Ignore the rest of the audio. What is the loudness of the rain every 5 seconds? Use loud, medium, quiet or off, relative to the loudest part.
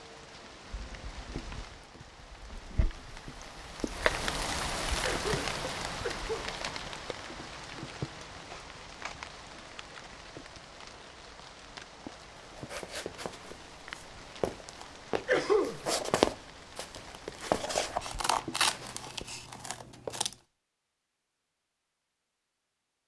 loud, loud, medium, medium, off.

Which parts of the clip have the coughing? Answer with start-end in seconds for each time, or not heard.
5.0-6.5, 15.2-15.8.